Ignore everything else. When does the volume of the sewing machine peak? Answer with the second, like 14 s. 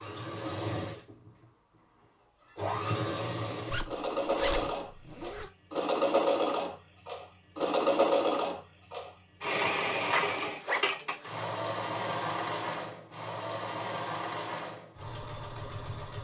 8 s.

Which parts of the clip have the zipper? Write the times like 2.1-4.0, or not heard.
3.7-5.5, 10.1-11.4.